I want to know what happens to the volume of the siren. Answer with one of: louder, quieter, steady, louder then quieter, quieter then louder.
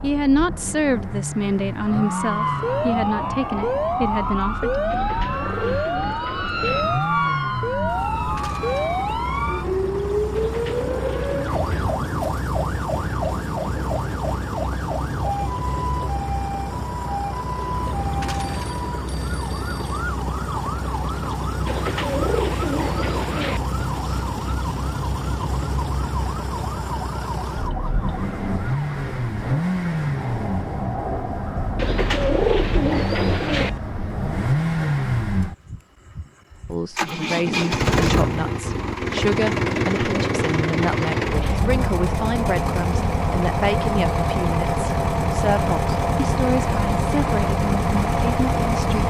quieter.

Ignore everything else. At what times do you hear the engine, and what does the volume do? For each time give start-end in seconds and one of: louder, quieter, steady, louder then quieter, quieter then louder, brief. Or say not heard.
0.0-49.0 louder.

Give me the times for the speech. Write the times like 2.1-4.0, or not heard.
0.0-5.1, 36.6-49.0.